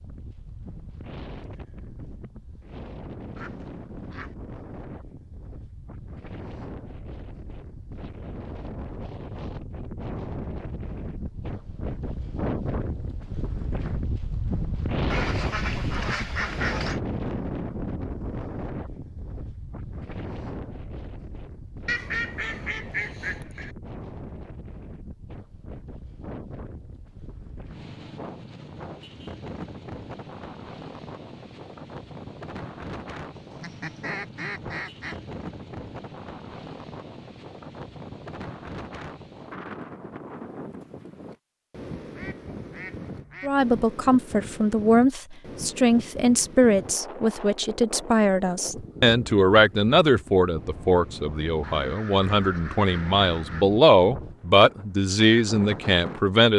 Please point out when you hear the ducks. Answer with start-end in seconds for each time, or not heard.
3.4-4.3, 15.1-17.0, 21.9-23.8, 33.5-35.1, 42.0-43.6, 51.6-53.6.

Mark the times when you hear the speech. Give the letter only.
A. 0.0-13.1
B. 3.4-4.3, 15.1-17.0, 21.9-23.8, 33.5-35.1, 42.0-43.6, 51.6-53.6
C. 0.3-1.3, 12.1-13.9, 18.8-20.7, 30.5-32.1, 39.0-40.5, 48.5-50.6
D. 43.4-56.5
D.